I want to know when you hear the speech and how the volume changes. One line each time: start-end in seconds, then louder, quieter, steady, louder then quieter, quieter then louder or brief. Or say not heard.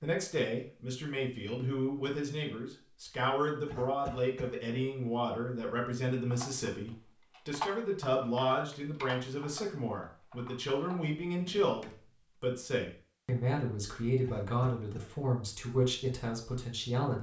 0.0-17.1 steady.